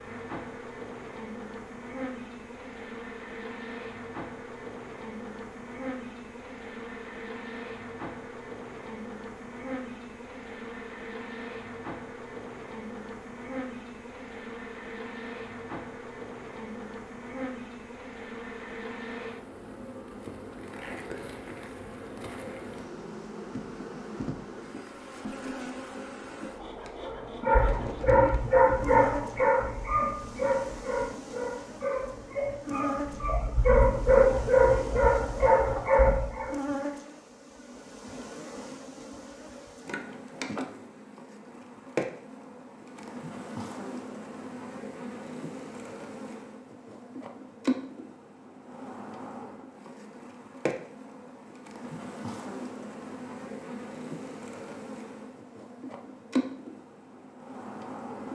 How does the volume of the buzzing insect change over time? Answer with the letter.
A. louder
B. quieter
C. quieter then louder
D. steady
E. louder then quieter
D.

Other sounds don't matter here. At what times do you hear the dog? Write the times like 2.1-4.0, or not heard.
27.0-36.6.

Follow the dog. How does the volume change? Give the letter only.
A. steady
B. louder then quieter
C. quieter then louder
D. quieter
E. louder
C.